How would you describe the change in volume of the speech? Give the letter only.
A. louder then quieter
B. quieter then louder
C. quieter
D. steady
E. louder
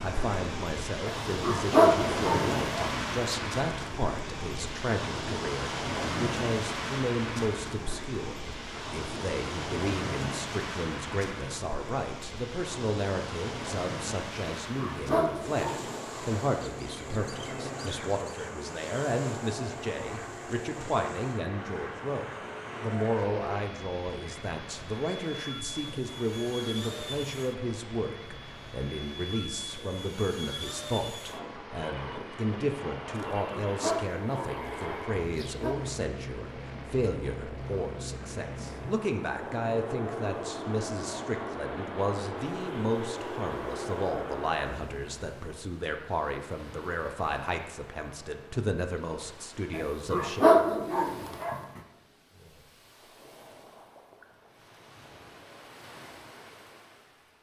D.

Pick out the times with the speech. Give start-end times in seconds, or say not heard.
0.0-50.5.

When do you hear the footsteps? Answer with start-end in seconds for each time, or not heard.
not heard.